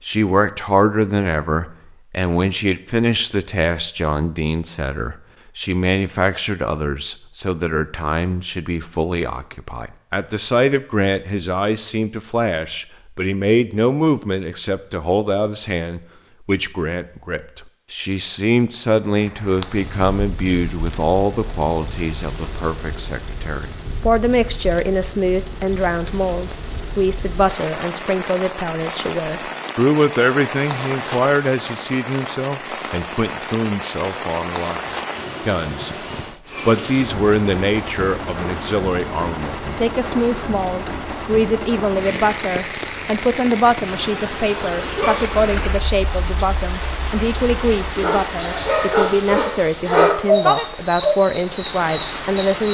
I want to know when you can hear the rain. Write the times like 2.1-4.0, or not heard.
19.1-52.6.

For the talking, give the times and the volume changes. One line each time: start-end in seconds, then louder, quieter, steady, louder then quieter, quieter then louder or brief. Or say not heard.
0.1-35.9 steady
36.6-52.6 steady.